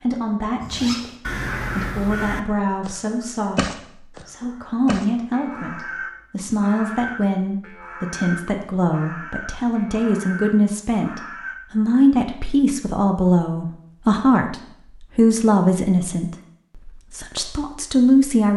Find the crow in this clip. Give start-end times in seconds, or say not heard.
0.6-11.6.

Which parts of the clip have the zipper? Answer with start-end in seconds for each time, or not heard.
0.7-1.1.